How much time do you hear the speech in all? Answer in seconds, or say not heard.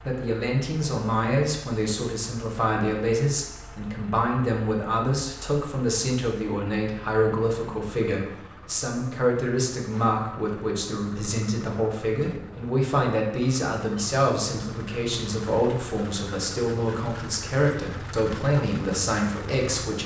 20 s.